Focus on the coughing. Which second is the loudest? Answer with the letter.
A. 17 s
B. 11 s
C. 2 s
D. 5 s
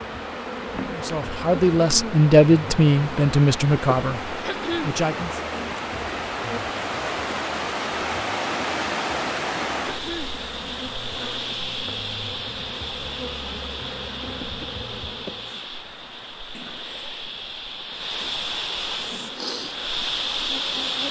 D.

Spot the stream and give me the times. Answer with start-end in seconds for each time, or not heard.
0.0-21.0.